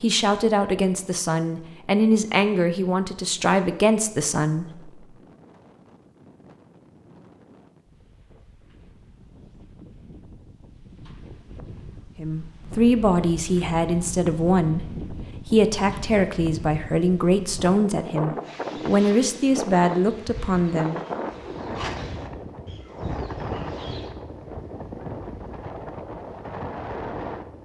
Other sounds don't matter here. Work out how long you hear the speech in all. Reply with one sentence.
You can hear the speech for 14 seconds altogether.